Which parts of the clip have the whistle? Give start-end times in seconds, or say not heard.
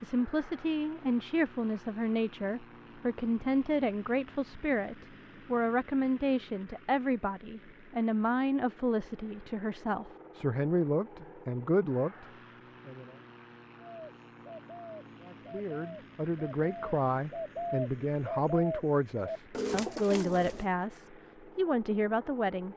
not heard.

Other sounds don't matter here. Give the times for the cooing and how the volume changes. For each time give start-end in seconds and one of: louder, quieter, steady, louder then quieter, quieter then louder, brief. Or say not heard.
13.8-20.7 louder.